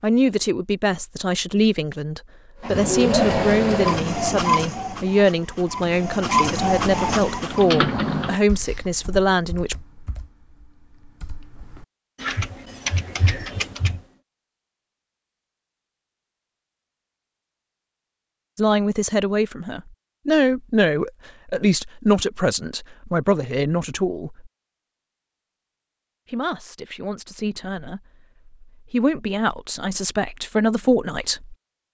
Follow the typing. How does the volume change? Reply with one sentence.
The loudness of the typing goes down, then up.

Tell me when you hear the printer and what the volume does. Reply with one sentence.
You can hear the printer from 2.6 to 7.7 s, getting quieter then louder.